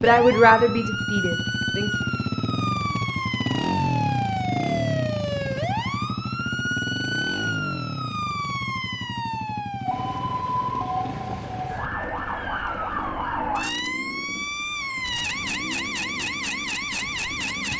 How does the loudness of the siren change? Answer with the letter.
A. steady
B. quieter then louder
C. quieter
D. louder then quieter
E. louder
A.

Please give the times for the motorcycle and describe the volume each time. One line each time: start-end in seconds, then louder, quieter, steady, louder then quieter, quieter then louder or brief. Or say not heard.
0.0-17.7 quieter.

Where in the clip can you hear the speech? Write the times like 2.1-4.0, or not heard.
0.0-1.9.